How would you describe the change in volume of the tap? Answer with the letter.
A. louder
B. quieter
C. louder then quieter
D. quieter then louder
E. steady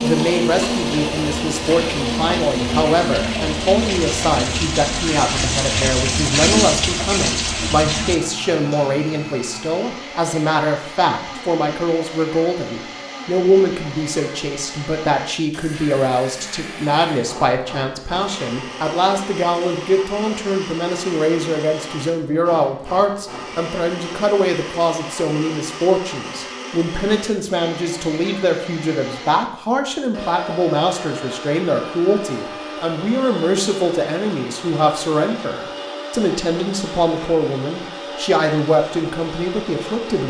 A.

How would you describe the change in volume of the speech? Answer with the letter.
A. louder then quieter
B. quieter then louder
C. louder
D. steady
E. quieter
D.